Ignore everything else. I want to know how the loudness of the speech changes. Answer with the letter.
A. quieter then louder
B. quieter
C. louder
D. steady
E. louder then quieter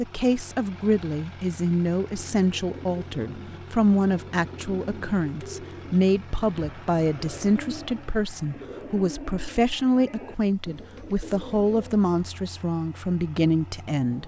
D.